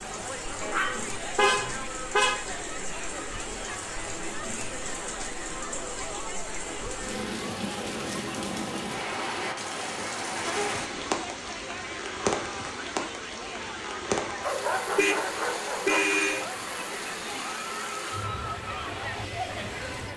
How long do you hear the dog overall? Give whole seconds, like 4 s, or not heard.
3 s.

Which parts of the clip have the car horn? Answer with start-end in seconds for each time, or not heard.
1.4-2.5, 10.4-11.1, 14.9-16.4.